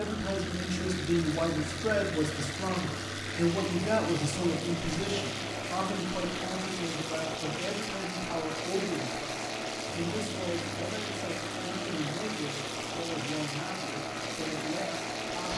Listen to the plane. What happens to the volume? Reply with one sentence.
The volume of the plane stays about the same.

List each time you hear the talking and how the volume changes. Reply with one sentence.
The talking can be heard from 0.0 to 15.5 s, getting quieter.